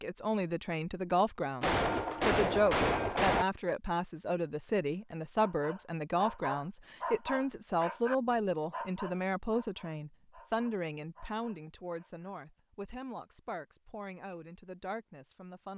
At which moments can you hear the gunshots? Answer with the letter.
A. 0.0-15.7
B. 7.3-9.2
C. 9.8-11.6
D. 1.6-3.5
D.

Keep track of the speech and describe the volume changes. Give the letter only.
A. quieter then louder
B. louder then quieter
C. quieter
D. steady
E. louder
C.